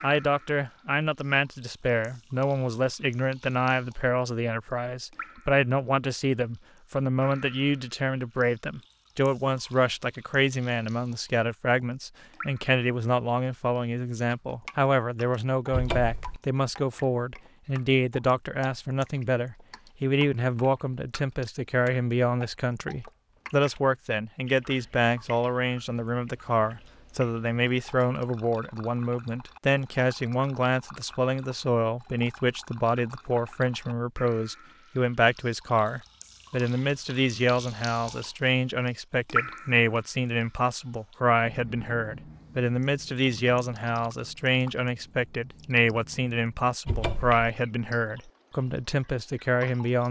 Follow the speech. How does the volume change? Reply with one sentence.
The loudness of the speech stays about the same.